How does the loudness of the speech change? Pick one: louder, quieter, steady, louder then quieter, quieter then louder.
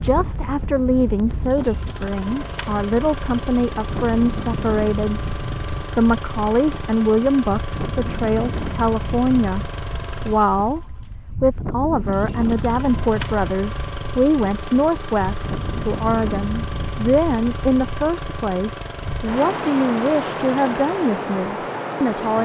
steady.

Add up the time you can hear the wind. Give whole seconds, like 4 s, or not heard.
22 s.